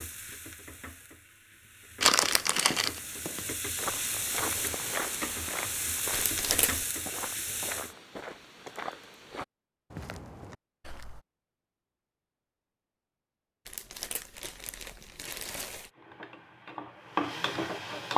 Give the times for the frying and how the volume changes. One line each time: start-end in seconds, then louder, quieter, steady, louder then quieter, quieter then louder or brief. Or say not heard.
0.0-8.0 louder
15.9-18.1 brief.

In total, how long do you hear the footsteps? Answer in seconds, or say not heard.
9 s.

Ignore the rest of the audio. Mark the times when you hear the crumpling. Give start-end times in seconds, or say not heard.
2.0-3.0, 6.1-6.8, 13.7-15.9.